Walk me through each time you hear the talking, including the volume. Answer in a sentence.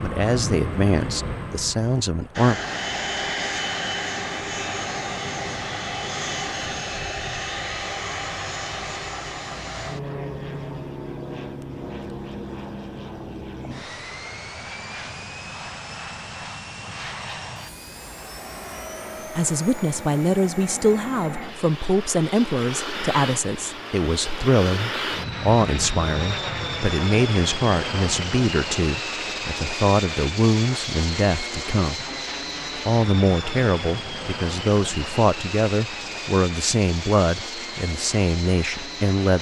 You can hear the talking briefly from 0.0 to 2.6 s; from 19.4 to 32.0 s, at a steady volume; and from 32.8 to 39.3 s, at a steady volume.